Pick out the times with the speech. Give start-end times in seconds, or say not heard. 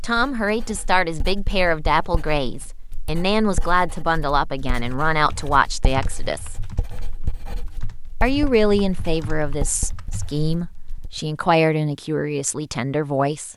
0.0-6.5, 8.2-13.5.